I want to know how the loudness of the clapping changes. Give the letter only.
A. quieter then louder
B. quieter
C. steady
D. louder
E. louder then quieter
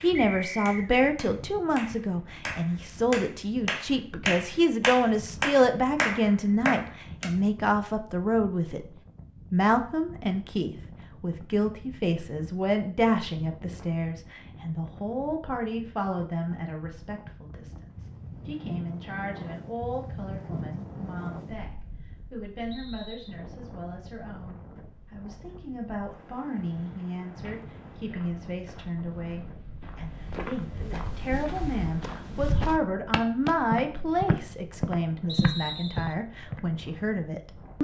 D.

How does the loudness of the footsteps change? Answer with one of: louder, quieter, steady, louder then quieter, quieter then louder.
louder.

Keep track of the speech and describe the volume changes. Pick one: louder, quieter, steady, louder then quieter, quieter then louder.
quieter then louder.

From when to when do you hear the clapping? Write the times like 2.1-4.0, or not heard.
0.0-7.2.